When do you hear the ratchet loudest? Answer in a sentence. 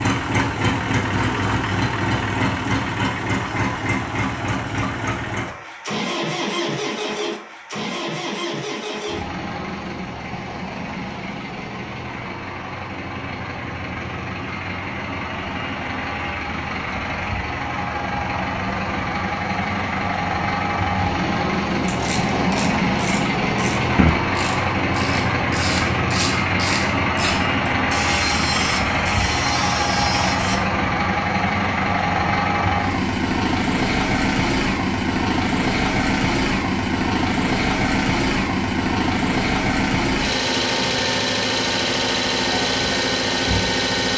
The volume of the ratchet peaks at 24 seconds.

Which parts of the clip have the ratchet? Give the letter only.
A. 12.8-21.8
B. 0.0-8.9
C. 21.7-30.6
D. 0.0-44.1
C.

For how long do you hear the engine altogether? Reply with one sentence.
You can hear the engine for 44 seconds altogether.